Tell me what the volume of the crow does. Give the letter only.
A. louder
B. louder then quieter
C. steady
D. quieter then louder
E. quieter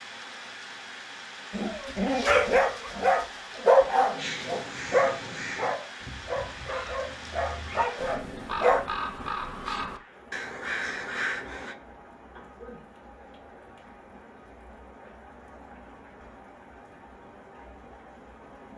D.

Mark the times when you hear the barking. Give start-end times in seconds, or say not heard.
1.5-8.8.